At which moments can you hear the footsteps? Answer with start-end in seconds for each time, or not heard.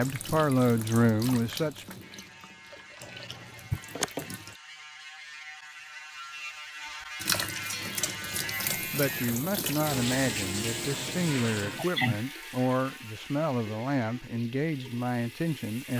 not heard.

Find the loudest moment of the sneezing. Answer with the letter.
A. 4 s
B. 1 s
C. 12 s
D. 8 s
C.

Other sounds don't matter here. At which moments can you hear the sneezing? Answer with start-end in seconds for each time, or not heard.
3.0-3.8, 11.8-12.6.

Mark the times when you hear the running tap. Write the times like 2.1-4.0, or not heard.
0.0-4.6, 7.2-15.9.